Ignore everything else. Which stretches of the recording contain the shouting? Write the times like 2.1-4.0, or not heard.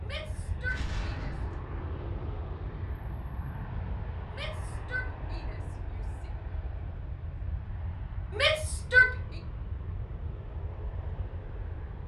0.0-1.4, 4.3-6.3, 8.3-9.2.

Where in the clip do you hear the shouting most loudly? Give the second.
9 s.